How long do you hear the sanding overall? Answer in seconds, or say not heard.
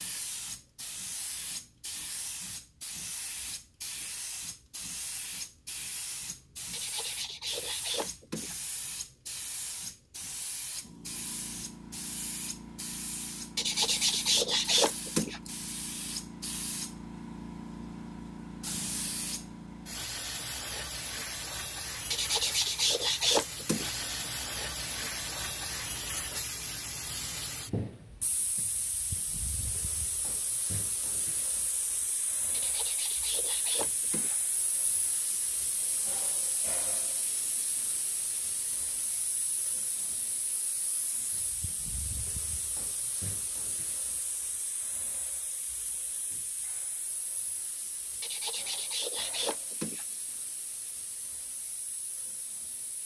10 s.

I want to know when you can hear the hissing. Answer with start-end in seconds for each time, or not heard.
0.0-53.0.